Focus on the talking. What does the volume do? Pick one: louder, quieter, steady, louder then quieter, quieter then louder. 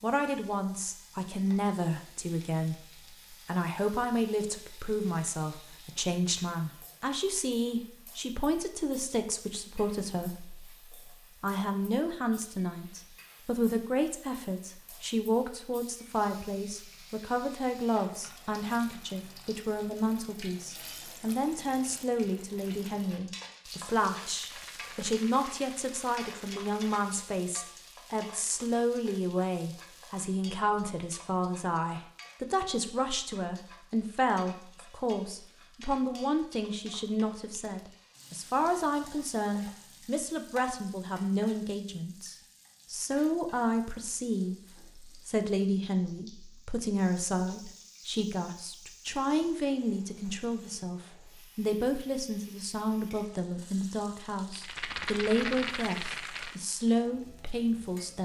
steady.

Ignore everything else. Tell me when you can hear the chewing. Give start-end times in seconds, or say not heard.
not heard.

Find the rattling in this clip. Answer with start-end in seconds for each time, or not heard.
24.2-26.9, 54.5-56.5.